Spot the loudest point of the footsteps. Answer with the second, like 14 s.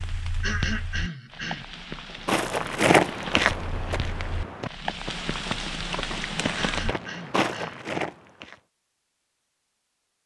3 s.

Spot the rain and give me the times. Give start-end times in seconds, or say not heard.
0.0-7.0.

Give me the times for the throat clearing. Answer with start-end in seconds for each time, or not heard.
0.4-1.7, 6.5-7.8.